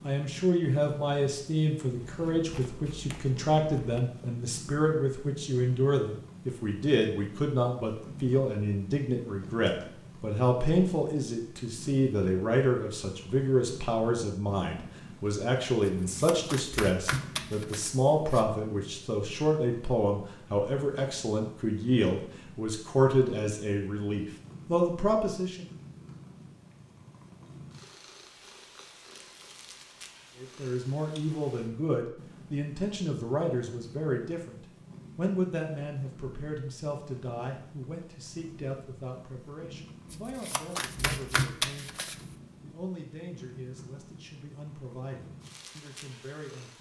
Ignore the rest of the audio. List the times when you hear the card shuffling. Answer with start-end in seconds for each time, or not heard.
2.0-4.0, 15.8-18.4, 40.1-42.2.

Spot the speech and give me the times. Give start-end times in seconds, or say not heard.
0.0-25.6, 30.4-34.5, 35.1-46.7.